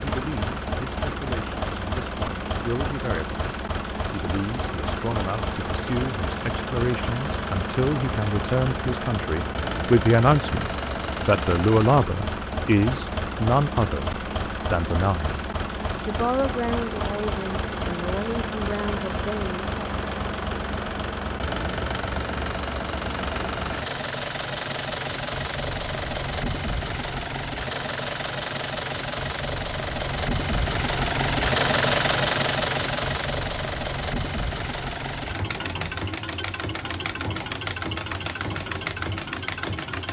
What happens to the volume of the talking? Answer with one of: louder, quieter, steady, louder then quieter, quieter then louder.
louder then quieter.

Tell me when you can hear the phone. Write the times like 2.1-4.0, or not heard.
not heard.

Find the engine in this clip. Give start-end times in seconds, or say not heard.
0.0-40.0.